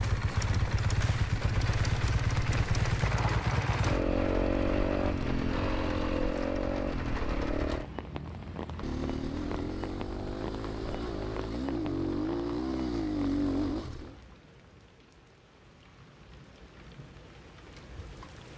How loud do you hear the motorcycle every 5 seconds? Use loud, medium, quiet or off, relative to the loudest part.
loud, loud, loud, off.